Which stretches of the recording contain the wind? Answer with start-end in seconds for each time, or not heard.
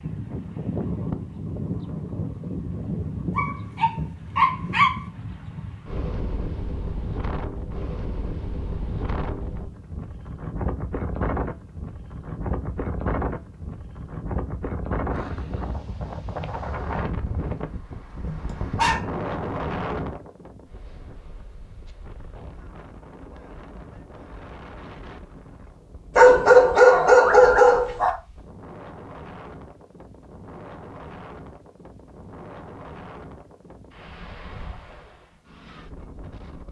0.0-36.6.